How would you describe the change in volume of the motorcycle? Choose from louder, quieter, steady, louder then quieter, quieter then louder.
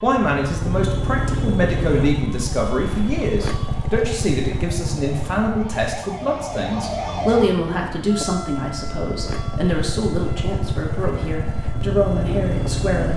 quieter then louder.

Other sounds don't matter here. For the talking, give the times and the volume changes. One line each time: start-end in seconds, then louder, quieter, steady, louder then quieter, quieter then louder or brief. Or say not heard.
0.0-13.1 steady.